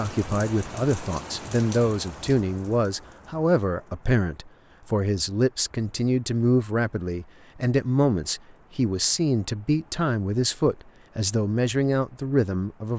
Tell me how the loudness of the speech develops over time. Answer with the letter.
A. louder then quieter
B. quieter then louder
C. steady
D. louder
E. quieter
C.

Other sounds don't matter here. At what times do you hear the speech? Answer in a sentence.
The speech can be heard from 0.0 to 12.9 s.